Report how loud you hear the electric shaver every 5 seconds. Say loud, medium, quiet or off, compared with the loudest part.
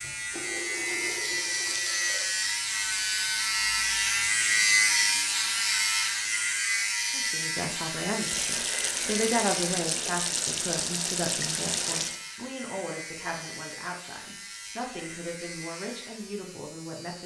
loud, loud, quiet, quiet.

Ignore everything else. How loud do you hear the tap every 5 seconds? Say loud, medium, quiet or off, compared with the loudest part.
medium, loud, loud, off.